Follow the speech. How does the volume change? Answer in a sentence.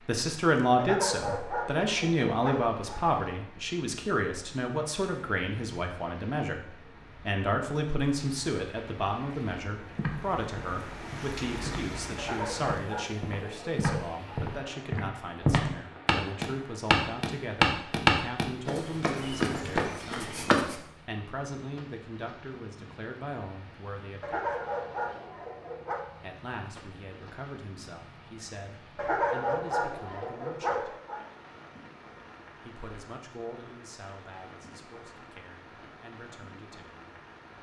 The loudness of the speech goes down.